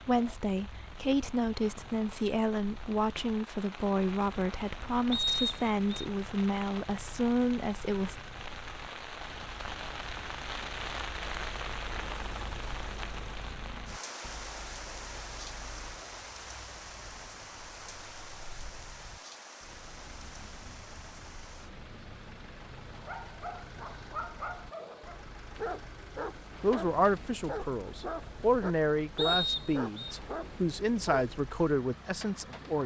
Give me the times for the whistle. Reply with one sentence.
You can hear the whistle from 5.1 to 6.0 s and from 29.1 to 30.1 s.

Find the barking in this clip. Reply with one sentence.
You can hear the barking from 22.9 to 31.3 s.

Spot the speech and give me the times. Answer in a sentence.
The speech can be heard from 0.1 to 8.2 s and from 26.6 to 32.8 s.